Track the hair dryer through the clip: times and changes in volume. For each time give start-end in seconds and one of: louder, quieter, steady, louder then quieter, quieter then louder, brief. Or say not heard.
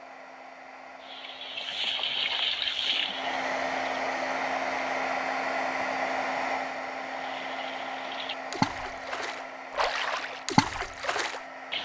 0.0-11.8 louder then quieter.